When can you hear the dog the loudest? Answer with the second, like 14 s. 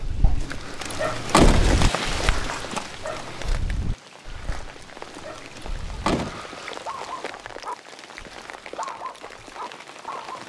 2 s.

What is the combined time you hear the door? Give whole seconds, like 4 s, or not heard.
3 s.